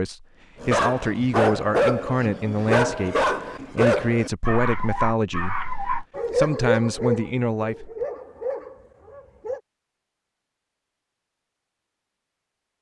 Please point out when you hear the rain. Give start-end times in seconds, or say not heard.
not heard.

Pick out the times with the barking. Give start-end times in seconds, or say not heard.
0.6-9.6.